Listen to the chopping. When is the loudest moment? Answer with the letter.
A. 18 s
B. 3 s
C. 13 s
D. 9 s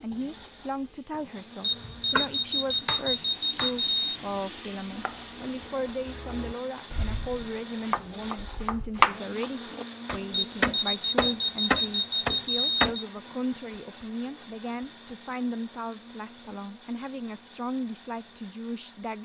D.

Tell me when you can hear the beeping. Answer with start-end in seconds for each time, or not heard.
1.6-4.2, 10.3-12.9.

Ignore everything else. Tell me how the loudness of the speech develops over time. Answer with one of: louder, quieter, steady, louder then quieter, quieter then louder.
steady.